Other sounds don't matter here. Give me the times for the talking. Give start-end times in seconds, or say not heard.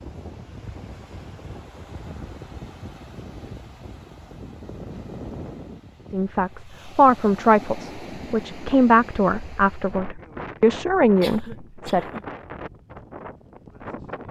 6.1-12.1.